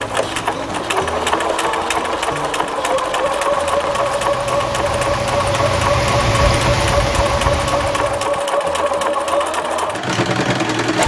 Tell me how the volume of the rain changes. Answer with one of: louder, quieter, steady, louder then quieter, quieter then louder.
louder.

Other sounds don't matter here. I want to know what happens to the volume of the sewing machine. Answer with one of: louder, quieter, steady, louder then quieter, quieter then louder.
steady.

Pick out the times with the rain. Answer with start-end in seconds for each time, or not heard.
0.0-8.4.